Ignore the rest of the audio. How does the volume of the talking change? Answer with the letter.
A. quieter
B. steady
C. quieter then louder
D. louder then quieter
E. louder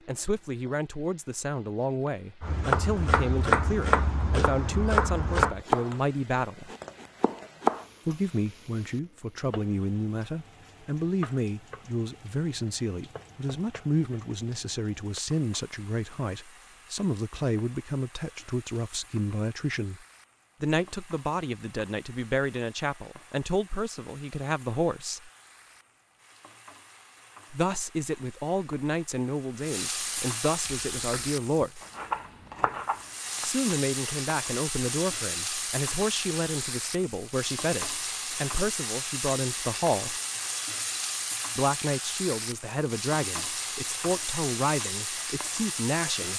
B.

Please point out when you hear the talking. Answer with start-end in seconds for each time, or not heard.
0.1-6.7, 8.1-25.3, 27.5-31.8, 33.4-40.2, 41.5-46.3.